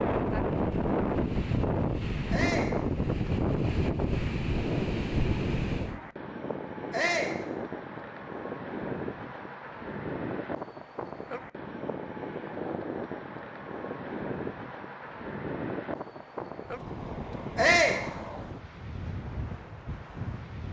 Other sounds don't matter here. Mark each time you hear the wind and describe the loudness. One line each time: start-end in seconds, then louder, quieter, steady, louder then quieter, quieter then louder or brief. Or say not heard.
0.0-20.6 quieter.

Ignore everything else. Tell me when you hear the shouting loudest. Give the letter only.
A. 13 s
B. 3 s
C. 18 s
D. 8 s
C.